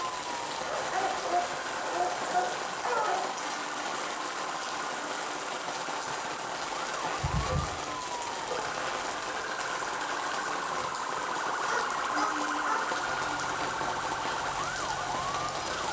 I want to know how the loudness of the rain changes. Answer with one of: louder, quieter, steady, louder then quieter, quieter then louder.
steady.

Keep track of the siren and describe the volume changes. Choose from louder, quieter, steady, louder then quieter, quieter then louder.
louder.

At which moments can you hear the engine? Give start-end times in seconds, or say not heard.
12.8-15.8.